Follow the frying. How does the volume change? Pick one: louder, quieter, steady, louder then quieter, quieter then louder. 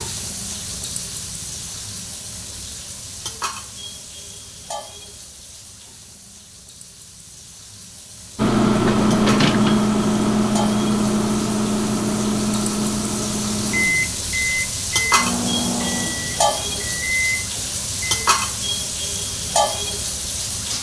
quieter then louder.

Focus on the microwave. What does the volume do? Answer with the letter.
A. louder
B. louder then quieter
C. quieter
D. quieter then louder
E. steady
C.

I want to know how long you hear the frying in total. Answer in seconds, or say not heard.
21 s.